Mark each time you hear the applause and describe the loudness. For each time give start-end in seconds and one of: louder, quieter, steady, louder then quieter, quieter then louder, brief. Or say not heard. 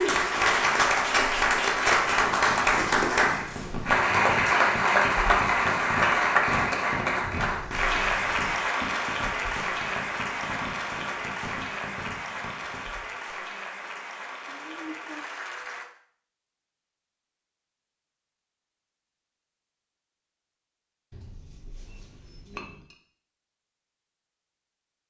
0.0-15.9 quieter.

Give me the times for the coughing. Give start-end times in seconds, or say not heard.
14.4-15.2.